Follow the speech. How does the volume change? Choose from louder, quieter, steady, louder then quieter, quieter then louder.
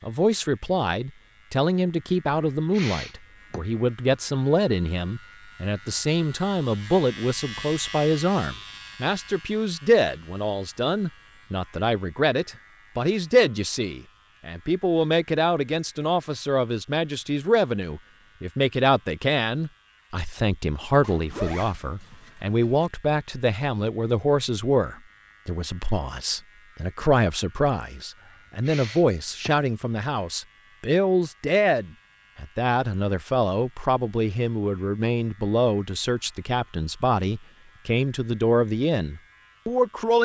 steady.